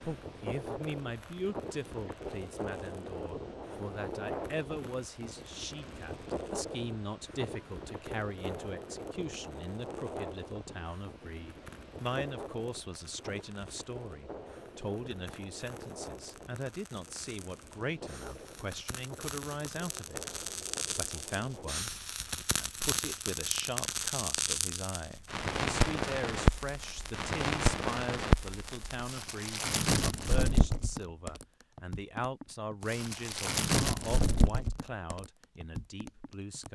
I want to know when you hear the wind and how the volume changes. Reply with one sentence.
You can hear the wind from 0.0 to 21.8 s, getting quieter.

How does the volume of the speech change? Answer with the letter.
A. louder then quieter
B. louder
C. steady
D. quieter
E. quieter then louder
C.